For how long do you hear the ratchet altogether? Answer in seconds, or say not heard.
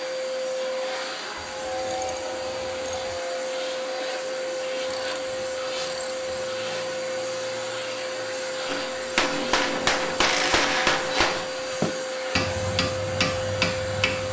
5 s.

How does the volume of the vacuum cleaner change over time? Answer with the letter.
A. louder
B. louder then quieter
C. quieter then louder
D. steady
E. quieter
D.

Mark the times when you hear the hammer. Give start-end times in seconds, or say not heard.
8.7-14.2.